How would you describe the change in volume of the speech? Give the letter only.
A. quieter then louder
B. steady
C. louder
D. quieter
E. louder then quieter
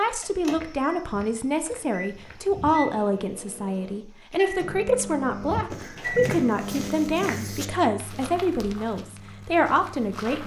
B.